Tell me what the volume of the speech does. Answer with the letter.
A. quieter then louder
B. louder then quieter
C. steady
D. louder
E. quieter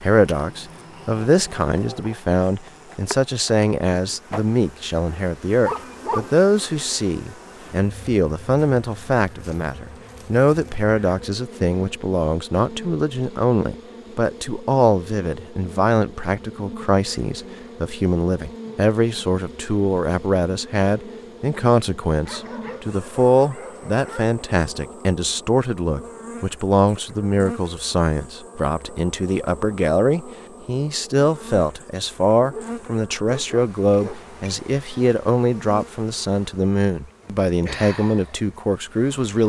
C.